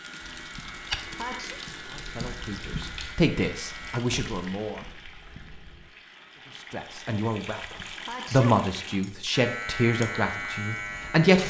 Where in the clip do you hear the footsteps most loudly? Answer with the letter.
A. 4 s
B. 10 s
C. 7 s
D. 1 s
D.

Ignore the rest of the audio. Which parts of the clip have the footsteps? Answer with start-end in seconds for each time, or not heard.
0.2-5.9.